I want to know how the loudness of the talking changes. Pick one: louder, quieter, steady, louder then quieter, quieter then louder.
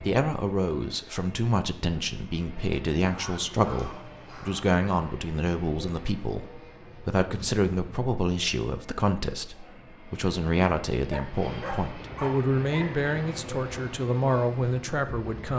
steady.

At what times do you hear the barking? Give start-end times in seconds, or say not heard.
3.0-4.7, 11.1-12.9.